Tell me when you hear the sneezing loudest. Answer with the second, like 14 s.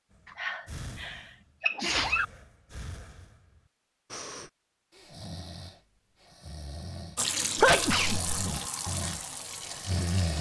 8 s.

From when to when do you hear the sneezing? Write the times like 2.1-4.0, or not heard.
0.3-2.2, 7.5-8.6.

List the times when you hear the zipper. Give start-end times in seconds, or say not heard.
not heard.